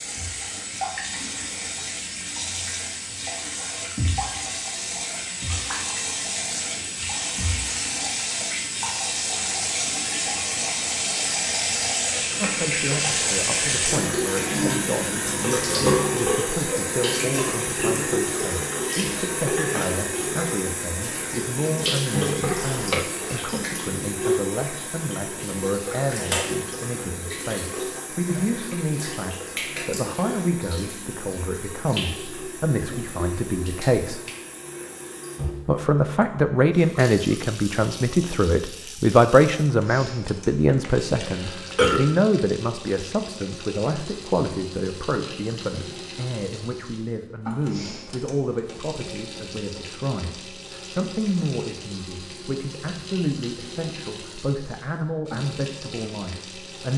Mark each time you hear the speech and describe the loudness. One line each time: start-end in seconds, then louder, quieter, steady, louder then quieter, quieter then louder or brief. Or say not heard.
12.4-34.2 steady
35.6-56.9 quieter.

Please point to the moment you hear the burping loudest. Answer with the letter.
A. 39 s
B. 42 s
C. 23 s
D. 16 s
B.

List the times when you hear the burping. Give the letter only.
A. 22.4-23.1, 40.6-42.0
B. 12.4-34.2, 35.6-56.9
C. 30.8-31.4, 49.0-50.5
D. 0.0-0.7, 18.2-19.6
A.